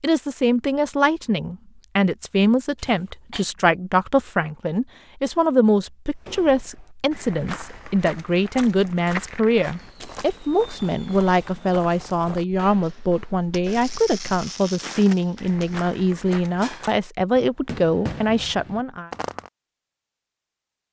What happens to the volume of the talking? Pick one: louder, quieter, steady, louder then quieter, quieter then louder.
steady.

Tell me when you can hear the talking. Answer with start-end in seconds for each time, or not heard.
0.0-19.1.